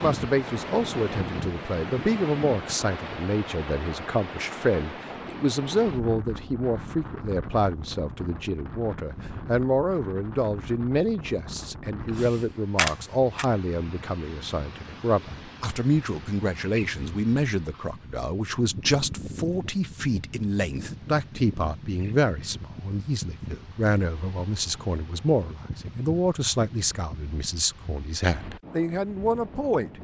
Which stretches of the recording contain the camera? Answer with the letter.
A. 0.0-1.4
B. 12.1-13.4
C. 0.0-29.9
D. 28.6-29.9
B.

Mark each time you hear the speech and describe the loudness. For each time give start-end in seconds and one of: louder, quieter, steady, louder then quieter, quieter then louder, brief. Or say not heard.
0.0-29.9 steady.